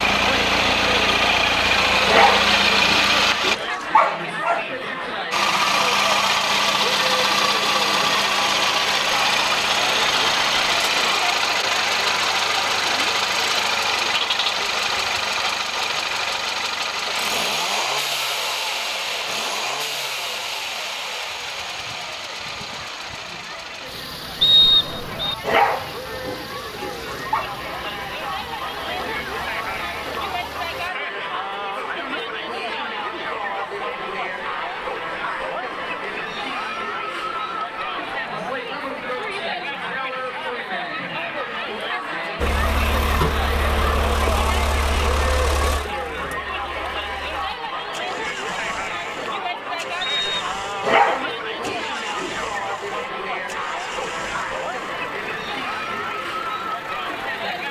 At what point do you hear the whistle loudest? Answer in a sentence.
The loudest moment of the whistle is at 25 seconds.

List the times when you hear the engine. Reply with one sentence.
The engine can be heard from 0.0 to 3.5 s, from 5.3 to 30.9 s and from 42.4 to 57.6 s.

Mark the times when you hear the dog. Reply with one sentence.
You can hear the dog from 2.0 to 4.7 s, from 25.4 to 27.5 s and from 50.8 to 52.4 s.